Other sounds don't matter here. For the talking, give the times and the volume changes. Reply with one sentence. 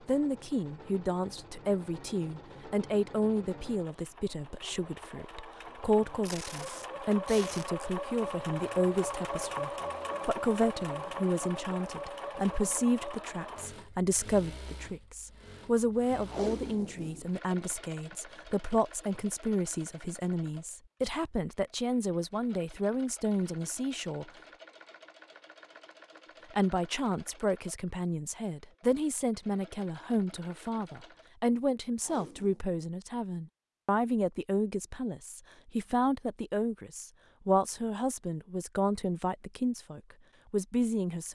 The talking can be heard from 0.1 to 24.2 s, at a steady volume; and from 26.5 to 41.3 s, at a steady volume.